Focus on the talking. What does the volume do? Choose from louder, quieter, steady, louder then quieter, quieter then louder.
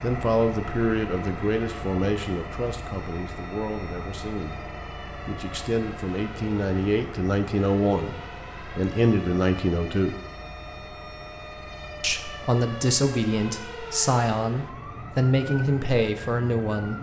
quieter then louder.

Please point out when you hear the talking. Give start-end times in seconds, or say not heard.
0.0-10.2, 12.0-16.9.